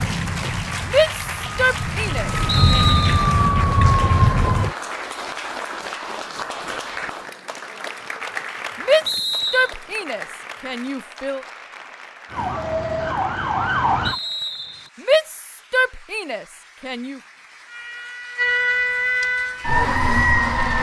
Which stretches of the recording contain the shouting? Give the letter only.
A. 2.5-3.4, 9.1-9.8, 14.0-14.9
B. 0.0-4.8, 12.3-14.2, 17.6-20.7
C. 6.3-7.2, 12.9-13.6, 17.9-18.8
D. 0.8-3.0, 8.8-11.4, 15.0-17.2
D.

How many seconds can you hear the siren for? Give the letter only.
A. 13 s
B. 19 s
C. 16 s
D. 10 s
D.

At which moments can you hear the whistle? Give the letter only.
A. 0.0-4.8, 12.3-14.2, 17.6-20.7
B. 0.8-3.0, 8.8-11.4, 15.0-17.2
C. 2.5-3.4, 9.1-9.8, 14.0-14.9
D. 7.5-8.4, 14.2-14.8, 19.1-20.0
C.